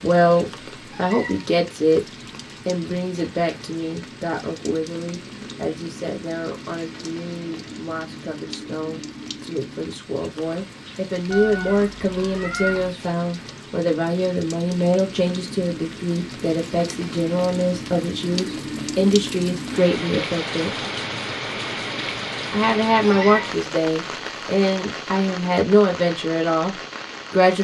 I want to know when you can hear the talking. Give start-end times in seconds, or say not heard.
0.0-2.0, 2.6-20.8, 22.5-27.5.